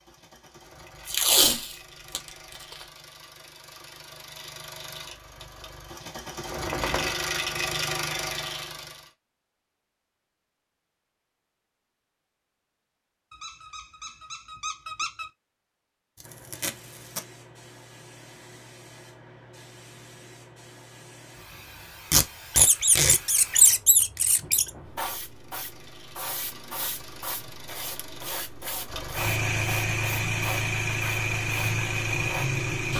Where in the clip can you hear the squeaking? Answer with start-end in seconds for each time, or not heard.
6.5-7.2, 13.3-15.3, 22.6-24.7.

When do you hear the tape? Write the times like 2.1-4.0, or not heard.
1.1-2.9, 16.2-17.2, 22.1-23.1.